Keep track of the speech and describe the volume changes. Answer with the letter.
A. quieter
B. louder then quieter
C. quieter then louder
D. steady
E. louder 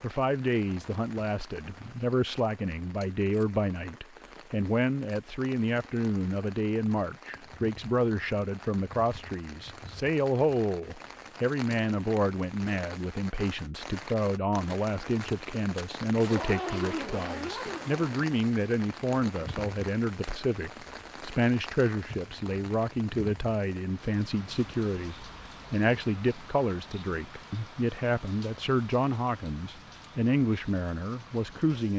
D.